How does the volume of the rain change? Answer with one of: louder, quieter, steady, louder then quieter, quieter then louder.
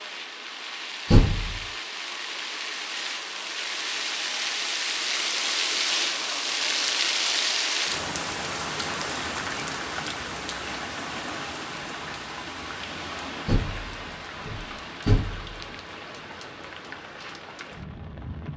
louder then quieter.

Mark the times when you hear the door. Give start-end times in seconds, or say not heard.
1.1-1.6, 13.4-15.6.